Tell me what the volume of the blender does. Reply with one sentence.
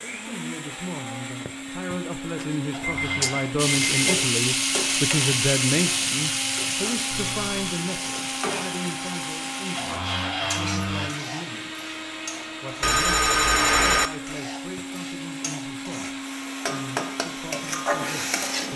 The loudness of the blender stays about the same.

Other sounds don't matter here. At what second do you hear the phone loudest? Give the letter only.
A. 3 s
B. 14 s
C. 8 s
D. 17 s
B.